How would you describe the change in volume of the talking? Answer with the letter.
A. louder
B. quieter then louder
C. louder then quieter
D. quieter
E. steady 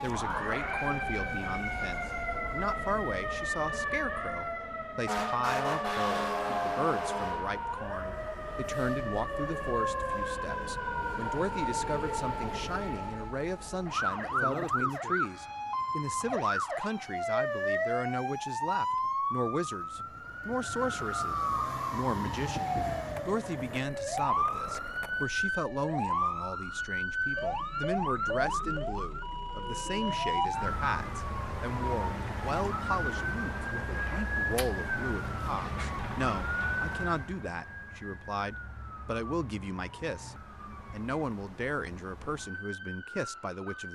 E.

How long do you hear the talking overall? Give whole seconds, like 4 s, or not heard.
44 s.